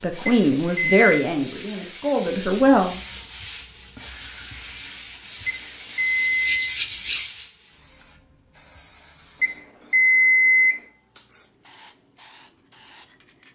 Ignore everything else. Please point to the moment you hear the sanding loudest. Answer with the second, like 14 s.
7 s.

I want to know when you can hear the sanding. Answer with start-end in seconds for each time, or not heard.
2.5-7.5.